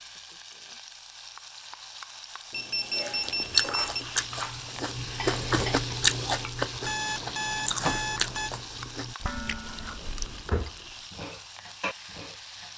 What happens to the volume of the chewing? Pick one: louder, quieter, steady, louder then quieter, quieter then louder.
quieter.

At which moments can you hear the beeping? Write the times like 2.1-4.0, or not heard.
2.5-4.0, 6.8-8.5.